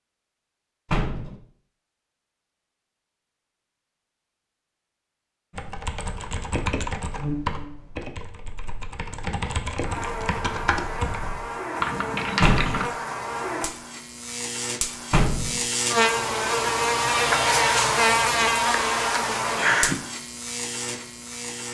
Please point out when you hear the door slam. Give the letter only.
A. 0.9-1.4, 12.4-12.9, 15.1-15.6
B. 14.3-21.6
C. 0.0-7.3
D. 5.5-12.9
A.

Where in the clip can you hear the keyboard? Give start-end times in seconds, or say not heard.
5.5-12.9.